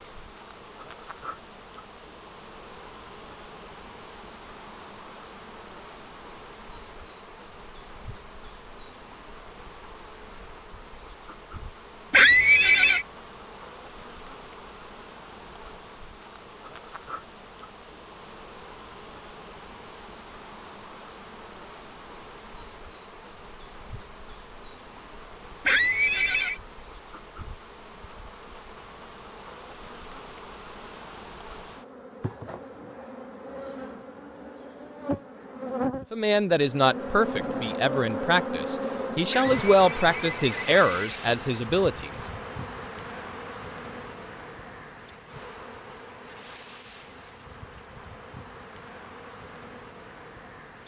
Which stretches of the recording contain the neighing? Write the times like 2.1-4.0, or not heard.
12.1-13.1, 25.6-26.6, 39.3-41.2.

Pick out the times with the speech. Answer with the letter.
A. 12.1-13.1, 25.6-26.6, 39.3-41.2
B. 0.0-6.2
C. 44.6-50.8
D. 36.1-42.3
D.